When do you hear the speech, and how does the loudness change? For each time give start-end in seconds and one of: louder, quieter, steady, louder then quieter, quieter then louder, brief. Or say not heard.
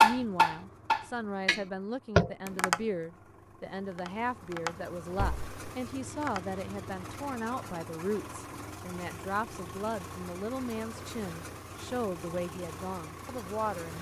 0.0-13.9 steady.